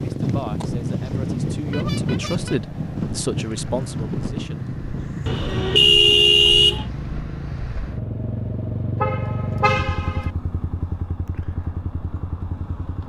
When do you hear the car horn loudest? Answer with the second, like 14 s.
6 s.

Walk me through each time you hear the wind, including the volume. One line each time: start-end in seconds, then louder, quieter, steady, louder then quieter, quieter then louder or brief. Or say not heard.
0.0-7.3 quieter.